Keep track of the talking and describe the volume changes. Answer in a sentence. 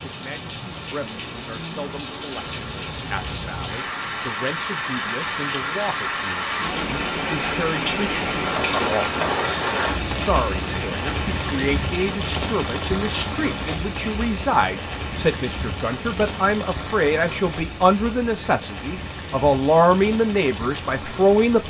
The loudness of the talking goes up.